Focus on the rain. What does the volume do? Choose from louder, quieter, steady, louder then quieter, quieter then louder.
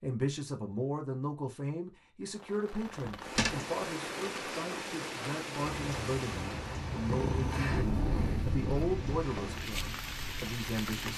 quieter then louder.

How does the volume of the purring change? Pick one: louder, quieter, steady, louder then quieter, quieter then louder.
louder then quieter.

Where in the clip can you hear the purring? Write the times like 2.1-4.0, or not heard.
5.8-11.1.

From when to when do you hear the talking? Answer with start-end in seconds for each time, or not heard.
0.0-11.1.